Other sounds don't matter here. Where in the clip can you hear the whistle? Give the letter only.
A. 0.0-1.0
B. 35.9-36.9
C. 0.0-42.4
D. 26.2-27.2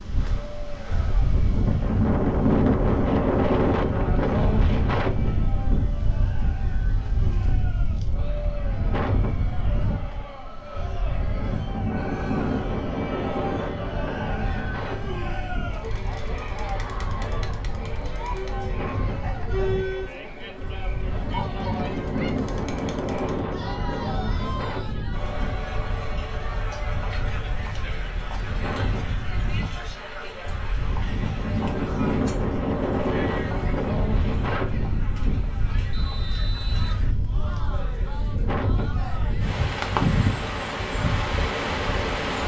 B.